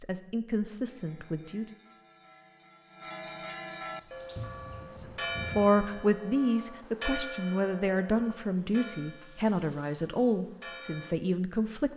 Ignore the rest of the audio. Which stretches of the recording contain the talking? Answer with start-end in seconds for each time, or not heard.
0.0-1.6, 4.9-11.9.